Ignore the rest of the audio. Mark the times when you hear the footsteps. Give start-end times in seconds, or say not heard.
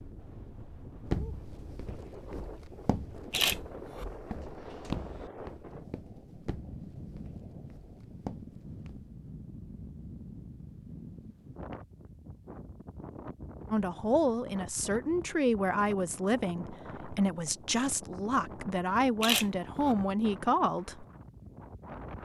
1.1-9.1.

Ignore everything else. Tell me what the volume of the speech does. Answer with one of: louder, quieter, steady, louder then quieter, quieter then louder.
steady.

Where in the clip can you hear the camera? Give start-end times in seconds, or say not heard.
3.3-4.0, 19.2-19.9.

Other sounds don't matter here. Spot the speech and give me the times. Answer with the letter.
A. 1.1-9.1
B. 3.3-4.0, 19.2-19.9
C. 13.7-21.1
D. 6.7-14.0
C.